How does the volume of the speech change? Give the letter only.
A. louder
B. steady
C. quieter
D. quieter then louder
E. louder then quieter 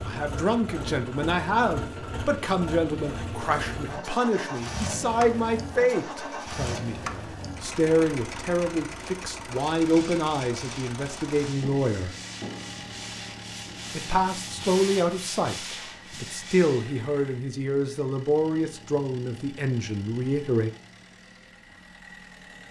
B.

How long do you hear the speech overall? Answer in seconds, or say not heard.
19 s.